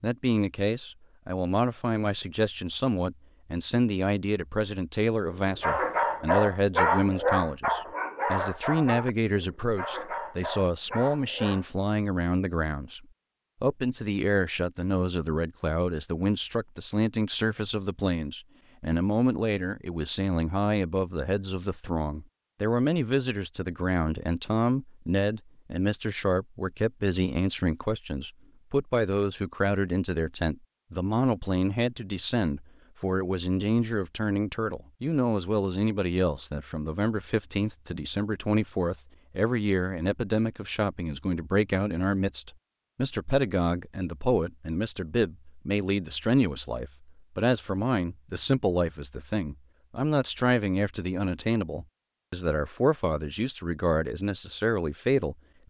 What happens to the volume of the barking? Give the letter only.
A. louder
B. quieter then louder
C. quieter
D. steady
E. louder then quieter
C.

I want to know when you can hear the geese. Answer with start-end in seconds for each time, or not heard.
not heard.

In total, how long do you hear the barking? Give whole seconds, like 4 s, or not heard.
6 s.